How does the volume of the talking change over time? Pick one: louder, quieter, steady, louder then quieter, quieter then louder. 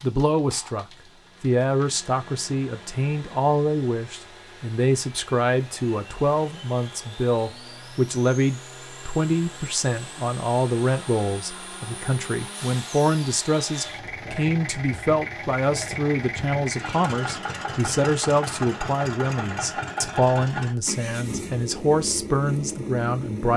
steady.